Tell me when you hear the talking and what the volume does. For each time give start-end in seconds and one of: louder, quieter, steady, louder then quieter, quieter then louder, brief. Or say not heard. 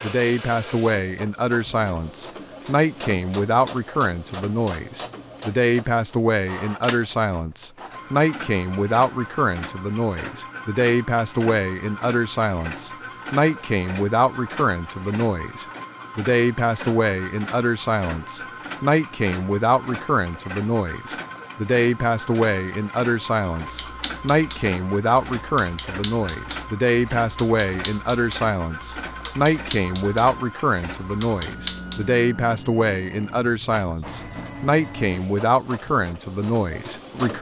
0.0-37.3 steady.